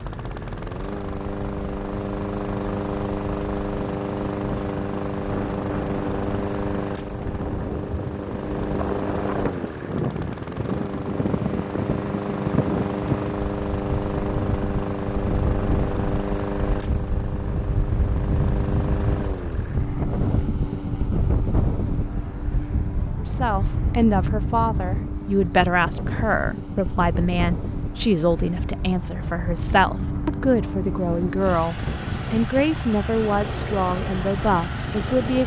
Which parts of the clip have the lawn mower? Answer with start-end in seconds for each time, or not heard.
0.0-35.4.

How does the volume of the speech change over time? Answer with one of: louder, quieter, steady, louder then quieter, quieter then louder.
steady.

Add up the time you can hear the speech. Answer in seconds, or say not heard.
12 s.